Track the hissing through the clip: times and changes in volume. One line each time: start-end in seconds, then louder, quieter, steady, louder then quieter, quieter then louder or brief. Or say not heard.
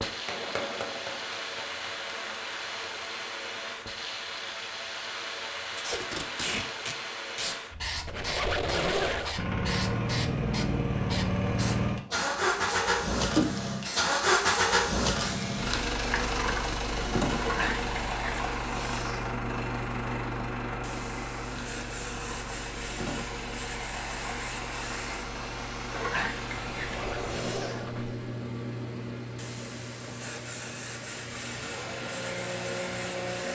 0.0-33.5 steady.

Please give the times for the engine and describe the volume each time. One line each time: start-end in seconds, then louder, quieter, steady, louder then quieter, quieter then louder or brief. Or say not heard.
9.3-33.5 quieter.